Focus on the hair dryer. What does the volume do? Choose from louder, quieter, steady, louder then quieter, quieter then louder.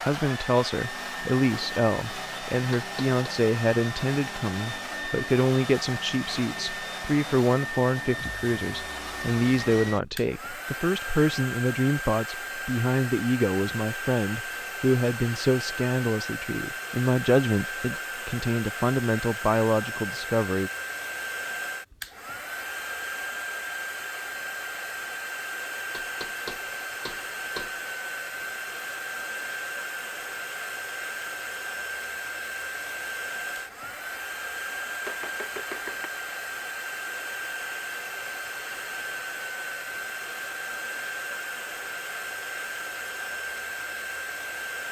steady.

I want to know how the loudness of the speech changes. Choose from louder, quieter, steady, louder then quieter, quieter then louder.
steady.